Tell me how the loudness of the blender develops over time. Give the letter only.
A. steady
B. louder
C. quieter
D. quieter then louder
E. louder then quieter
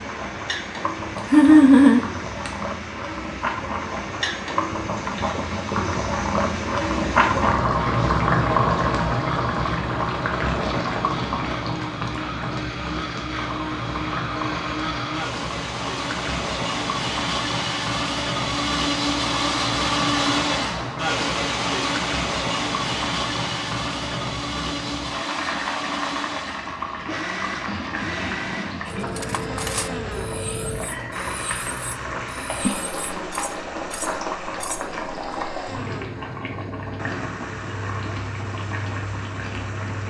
E.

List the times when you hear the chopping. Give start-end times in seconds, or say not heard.
not heard.